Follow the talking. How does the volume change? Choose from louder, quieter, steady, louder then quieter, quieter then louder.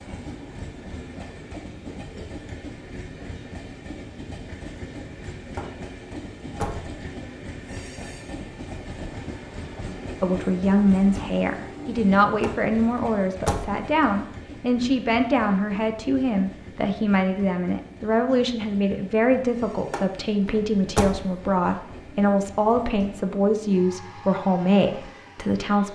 steady.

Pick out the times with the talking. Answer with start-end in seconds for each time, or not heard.
10.2-25.8.